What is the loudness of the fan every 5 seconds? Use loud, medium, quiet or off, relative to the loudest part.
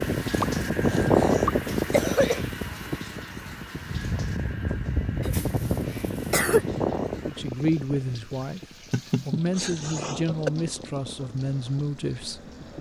loud, medium, quiet.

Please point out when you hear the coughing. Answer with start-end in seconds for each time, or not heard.
0.4-2.4, 5.2-6.7, 8.9-10.5.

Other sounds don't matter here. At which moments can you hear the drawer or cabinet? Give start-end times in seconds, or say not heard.
not heard.